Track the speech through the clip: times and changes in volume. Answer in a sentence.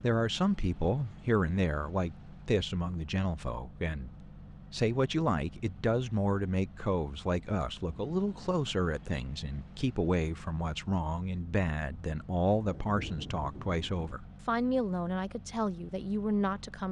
You can hear the speech from 0.0 to 16.8 s, at a steady volume.